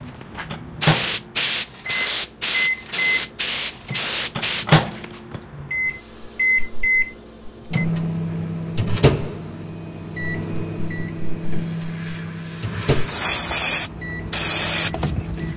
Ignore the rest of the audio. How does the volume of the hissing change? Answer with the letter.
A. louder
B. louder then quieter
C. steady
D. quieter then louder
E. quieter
D.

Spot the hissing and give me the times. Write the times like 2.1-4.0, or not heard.
0.0-15.5.